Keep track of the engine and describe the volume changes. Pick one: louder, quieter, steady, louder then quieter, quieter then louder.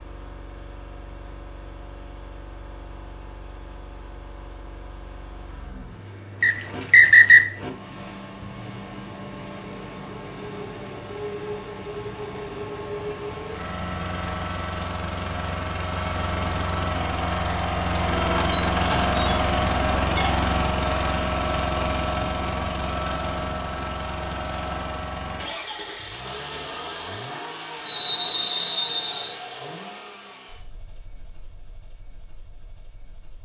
louder then quieter.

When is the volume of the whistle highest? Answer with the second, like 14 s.
7 s.